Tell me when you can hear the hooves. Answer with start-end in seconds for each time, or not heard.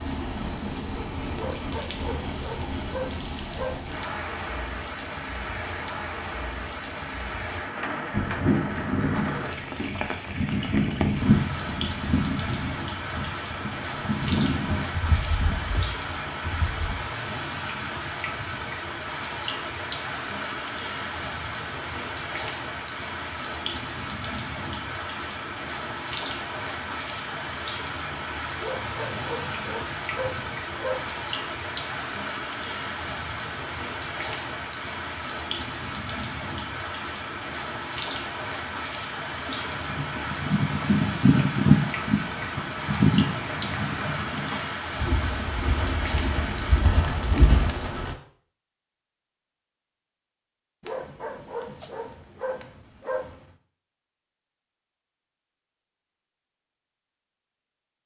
8.1-16.9, 39.5-47.8.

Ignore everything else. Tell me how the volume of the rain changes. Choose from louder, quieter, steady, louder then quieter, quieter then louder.
steady.